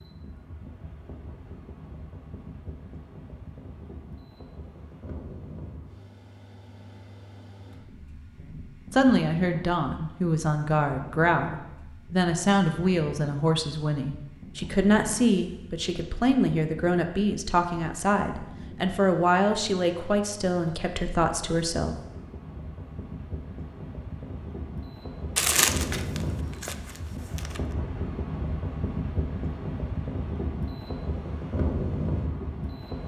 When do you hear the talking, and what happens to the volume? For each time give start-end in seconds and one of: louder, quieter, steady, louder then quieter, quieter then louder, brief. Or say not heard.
8.5-21.9 steady.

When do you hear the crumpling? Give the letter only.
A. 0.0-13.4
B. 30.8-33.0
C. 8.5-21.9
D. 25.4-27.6
D.